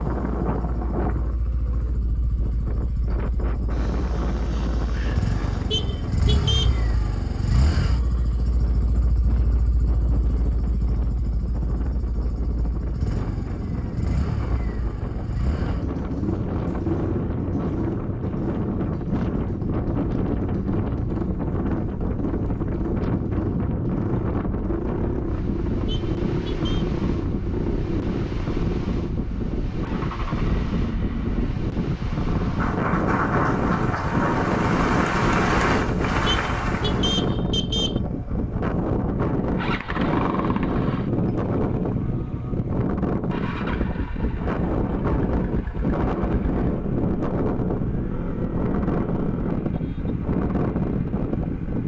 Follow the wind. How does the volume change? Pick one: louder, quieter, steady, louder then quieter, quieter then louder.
louder.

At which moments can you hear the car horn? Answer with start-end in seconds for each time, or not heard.
5.7-6.8, 25.9-26.9, 36.2-38.0.